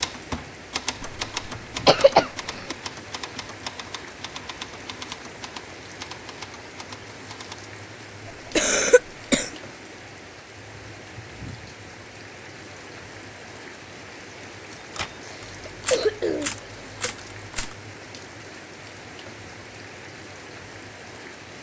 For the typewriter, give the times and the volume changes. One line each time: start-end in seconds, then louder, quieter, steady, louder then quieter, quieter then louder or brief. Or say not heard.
0.0-7.6 quieter
14.9-17.8 brief.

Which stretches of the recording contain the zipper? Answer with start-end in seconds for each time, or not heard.
not heard.